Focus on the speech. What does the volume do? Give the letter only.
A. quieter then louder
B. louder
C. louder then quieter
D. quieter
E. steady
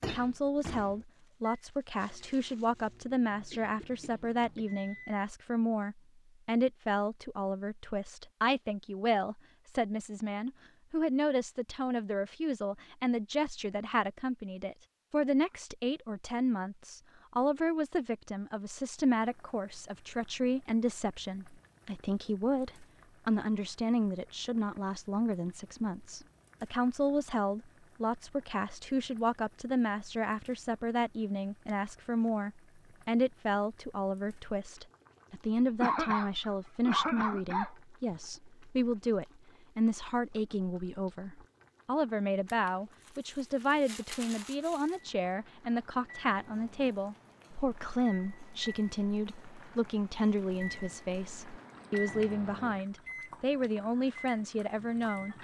E.